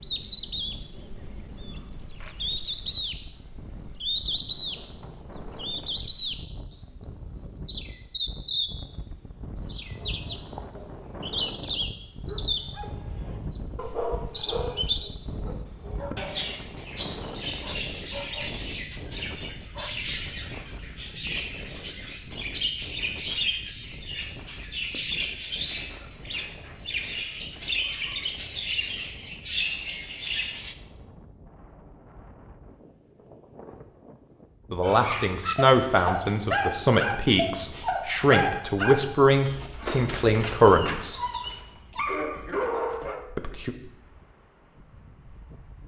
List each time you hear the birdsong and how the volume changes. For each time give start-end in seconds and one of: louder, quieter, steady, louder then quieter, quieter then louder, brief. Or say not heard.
0.0-30.8 steady.